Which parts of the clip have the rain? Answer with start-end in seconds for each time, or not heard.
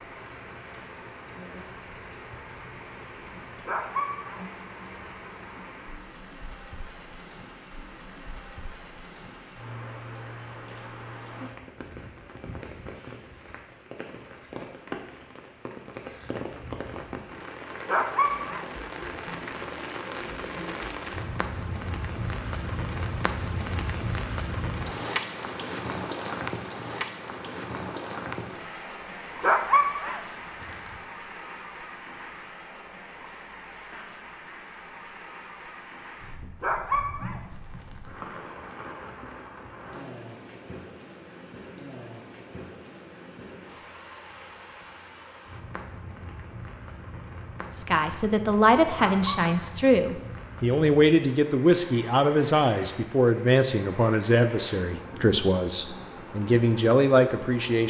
0.0-57.8.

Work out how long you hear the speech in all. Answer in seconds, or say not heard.
10 s.